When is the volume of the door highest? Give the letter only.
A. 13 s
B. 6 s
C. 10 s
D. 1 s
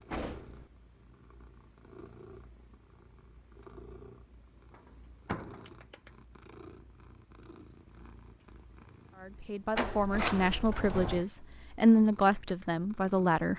C.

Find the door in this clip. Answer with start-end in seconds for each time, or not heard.
0.1-0.7, 4.7-5.8, 9.8-11.2.